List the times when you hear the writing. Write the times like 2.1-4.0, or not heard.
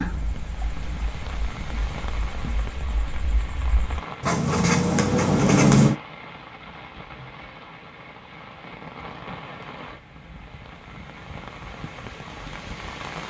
0.0-6.0.